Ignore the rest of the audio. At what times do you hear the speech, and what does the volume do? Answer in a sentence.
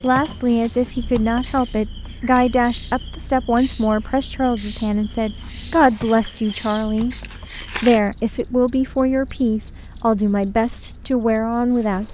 You can hear the speech from 0.0 to 12.0 s, at a steady volume.